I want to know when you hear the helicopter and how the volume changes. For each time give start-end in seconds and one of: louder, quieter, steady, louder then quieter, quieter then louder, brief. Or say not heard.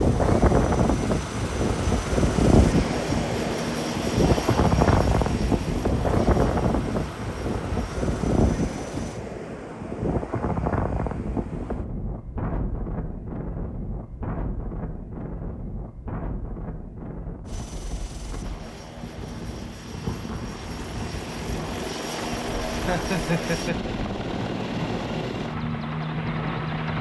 0.0-9.2 louder then quieter
17.4-26.9 louder.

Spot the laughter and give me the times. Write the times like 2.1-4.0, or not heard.
22.7-23.9.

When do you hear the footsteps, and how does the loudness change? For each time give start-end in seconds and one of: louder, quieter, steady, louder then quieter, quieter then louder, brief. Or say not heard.
not heard.